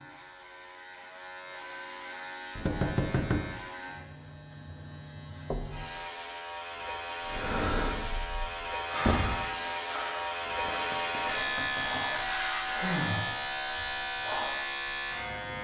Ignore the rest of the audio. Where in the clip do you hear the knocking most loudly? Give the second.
3 s.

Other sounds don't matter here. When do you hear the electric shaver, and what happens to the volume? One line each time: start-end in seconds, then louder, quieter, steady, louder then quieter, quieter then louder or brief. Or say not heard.
0.0-15.6 louder.